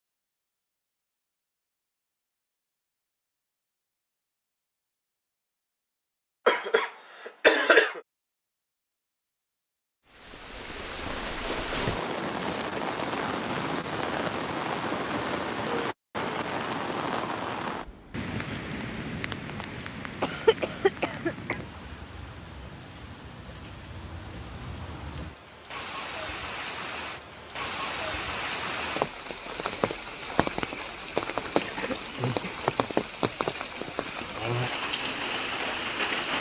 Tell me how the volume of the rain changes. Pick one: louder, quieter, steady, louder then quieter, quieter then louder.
quieter then louder.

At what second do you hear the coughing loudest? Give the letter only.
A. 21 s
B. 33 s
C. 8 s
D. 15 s
C.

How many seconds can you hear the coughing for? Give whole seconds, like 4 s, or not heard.
4 s.